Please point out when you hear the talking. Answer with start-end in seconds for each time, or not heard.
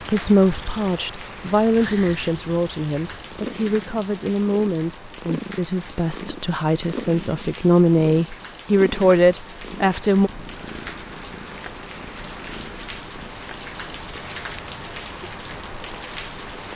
0.0-10.3.